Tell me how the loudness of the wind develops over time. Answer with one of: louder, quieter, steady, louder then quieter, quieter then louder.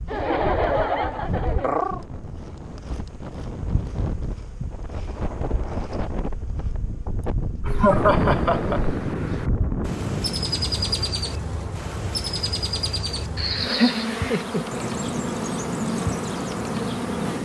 louder.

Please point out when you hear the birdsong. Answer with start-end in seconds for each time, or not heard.
7.7-17.4.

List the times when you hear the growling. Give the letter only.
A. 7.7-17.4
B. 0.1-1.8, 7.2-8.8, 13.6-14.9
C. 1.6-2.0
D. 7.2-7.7
C.